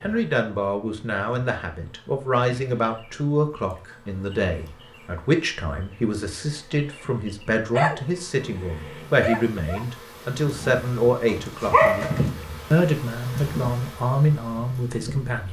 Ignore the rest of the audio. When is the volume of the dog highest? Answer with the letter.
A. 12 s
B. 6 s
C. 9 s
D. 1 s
A.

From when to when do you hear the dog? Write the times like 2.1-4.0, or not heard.
7.7-12.3.